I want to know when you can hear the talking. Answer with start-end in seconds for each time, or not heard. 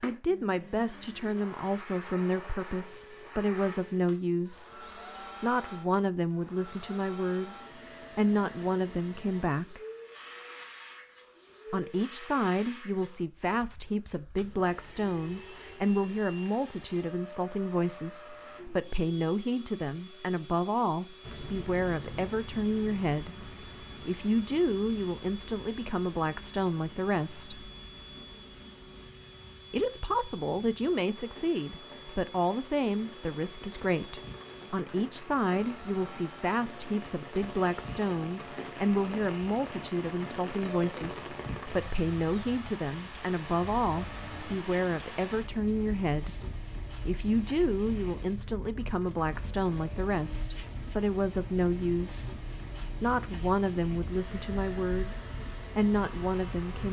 0.0-4.8, 5.4-9.8, 11.7-27.6, 29.7-52.3, 53.0-56.8.